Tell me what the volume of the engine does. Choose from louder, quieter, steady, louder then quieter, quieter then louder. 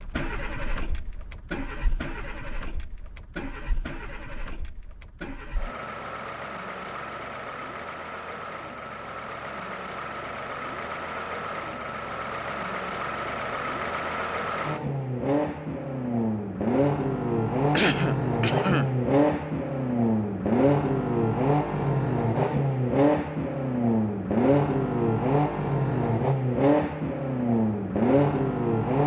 louder.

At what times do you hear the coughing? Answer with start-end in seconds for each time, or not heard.
17.7-18.9.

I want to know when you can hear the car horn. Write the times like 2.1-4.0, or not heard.
not heard.